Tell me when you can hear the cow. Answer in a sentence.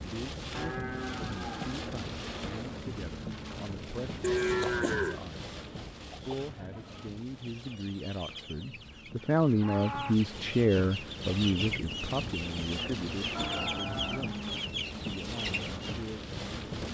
The cow can be heard from 0.5 to 1.9 s, from 4.2 to 5.2 s, from 9.4 to 10.2 s and from 13.3 to 14.7 s.